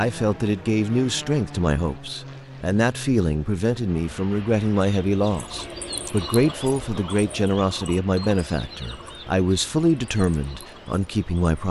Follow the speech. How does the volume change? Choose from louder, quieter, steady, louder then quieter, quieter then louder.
steady.